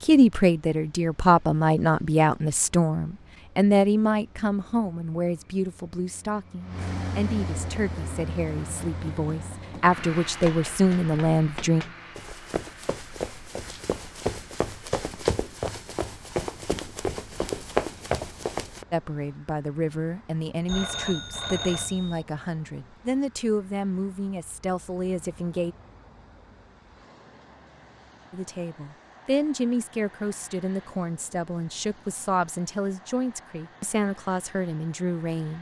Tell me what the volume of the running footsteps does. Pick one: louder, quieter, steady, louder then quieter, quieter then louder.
louder.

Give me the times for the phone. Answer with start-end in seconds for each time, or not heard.
20.6-22.2.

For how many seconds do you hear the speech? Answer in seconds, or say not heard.
26 s.